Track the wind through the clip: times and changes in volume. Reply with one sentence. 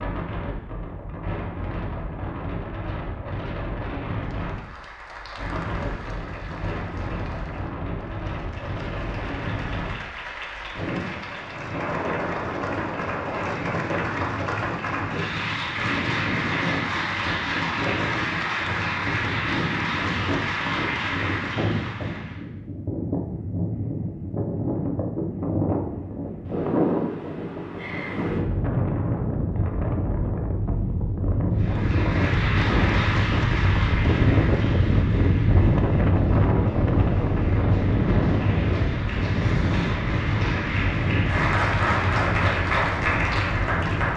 You can hear the wind from 0.0 to 44.1 s, getting louder.